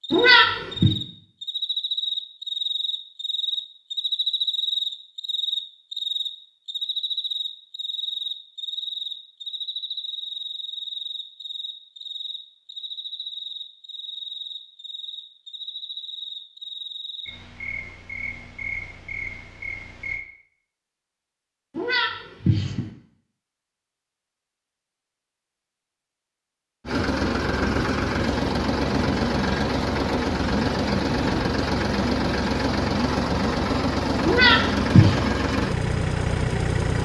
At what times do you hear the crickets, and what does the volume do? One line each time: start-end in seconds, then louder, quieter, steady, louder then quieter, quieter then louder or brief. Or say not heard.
0.0-20.2 quieter.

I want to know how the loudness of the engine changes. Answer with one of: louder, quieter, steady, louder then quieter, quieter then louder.
steady.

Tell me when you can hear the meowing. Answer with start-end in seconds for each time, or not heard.
0.1-0.9, 21.8-22.9, 34.2-35.2.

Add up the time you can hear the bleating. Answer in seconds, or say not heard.
not heard.